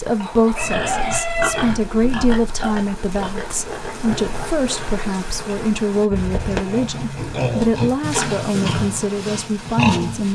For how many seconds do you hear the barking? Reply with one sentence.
The barking can't be heard in this clip.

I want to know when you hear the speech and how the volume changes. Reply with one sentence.
The speech can be heard from 0.0 to 10.3 s, at a steady volume.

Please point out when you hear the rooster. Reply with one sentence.
You can hear the rooster from 0.2 to 1.8 s.